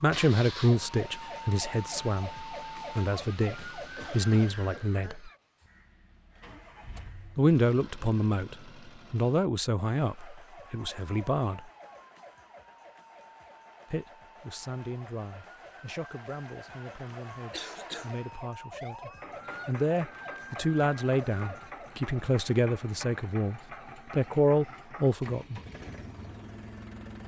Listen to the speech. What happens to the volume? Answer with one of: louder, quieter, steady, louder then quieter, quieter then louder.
quieter then louder.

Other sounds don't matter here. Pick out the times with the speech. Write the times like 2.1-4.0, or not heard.
0.0-5.3, 7.3-11.6, 13.9-25.6.